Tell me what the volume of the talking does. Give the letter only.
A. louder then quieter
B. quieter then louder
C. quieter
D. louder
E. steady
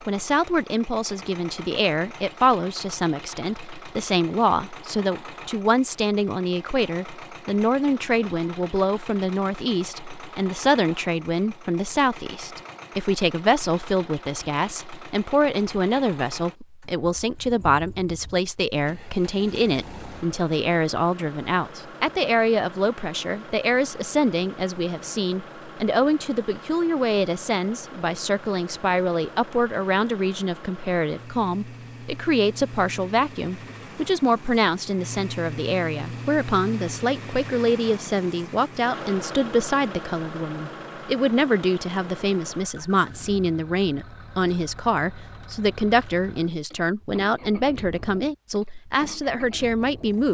E.